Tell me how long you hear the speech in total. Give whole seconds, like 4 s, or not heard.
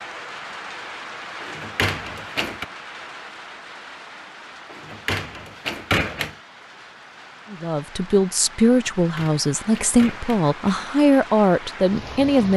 5 s.